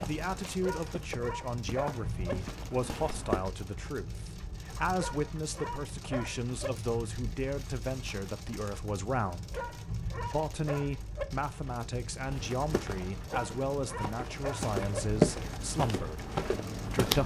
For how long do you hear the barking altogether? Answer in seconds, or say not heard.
8 s.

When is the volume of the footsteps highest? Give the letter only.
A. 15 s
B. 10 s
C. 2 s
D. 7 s
A.